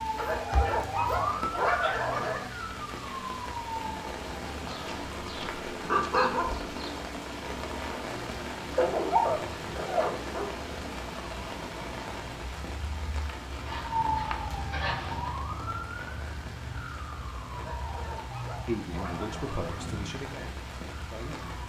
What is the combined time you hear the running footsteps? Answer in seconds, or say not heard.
not heard.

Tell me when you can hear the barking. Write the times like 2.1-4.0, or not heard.
0.1-2.5, 4.7-6.9, 8.8-10.8, 13.2-15.3, 17.6-19.9.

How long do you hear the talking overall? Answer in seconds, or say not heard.
3 s.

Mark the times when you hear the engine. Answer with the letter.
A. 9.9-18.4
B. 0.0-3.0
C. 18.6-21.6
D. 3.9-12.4
D.